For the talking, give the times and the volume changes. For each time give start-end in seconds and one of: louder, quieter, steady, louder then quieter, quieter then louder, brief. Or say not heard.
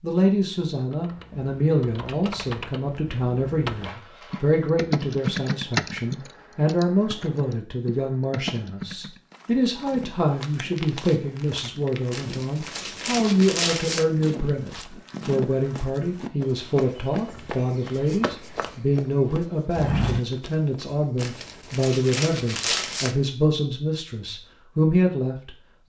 0.0-25.8 steady.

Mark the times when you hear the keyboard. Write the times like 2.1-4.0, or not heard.
0.9-9.3.